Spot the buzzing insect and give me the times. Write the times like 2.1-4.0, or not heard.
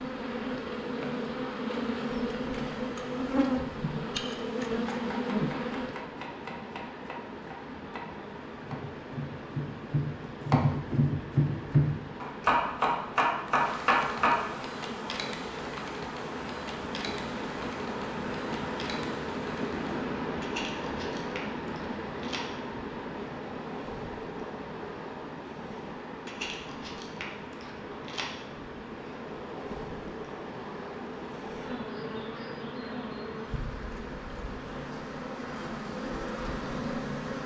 0.0-6.0, 13.4-37.4.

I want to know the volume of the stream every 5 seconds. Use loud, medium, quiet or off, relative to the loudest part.
medium, medium, medium, loud, loud, medium, medium, medium.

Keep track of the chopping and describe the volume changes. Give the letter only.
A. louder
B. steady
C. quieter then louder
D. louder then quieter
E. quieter
A.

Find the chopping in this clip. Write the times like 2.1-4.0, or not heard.
4.9-14.3.